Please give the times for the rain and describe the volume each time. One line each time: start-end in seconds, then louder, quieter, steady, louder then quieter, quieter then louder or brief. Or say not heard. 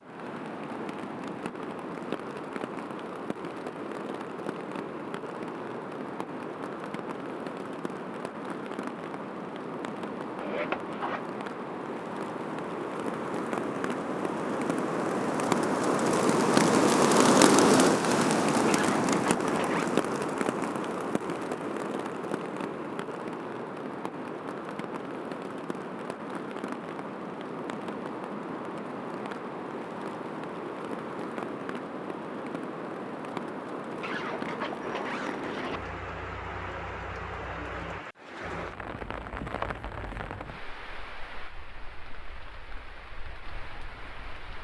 0.0-44.5 louder then quieter.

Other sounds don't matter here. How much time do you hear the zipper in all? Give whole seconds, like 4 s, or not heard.
4 s.